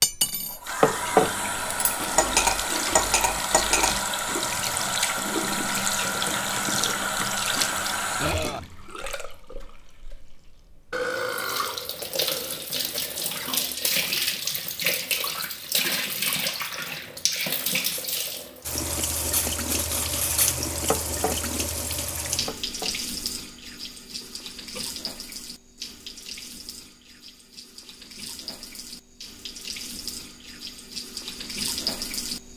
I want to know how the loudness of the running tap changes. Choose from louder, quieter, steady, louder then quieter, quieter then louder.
quieter.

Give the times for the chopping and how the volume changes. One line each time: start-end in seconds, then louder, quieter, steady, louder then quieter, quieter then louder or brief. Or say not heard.
not heard.